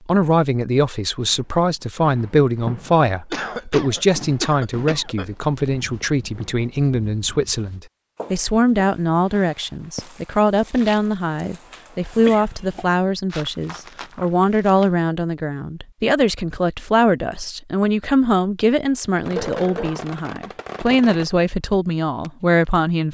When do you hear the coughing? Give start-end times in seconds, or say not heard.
3.3-5.2, 12.2-12.9, 19.0-20.0.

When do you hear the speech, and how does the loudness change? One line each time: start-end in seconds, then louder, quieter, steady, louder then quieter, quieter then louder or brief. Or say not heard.
0.1-23.0 steady.